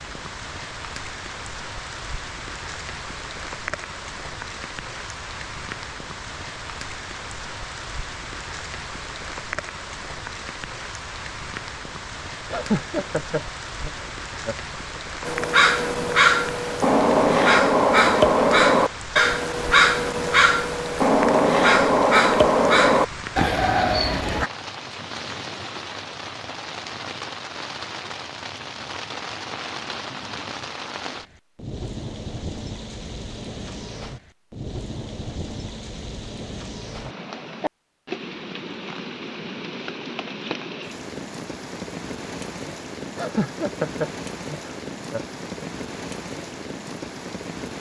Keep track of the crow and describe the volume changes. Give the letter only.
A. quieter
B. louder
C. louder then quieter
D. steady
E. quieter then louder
D.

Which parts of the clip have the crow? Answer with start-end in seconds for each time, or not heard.
15.2-24.5.